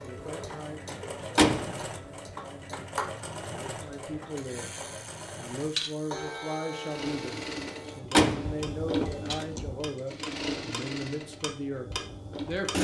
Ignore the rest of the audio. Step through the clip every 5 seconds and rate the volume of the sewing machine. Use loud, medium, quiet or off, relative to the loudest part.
medium, loud, loud.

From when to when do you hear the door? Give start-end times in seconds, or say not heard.
0.9-1.8, 7.7-9.4.